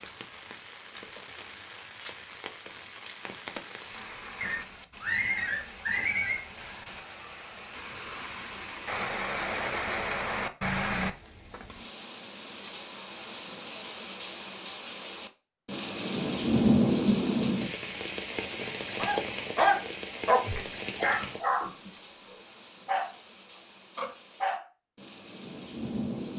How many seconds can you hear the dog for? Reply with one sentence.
The dog can be heard for 5 seconds in total.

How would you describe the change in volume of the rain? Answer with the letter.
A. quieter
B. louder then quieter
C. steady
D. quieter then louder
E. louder
B.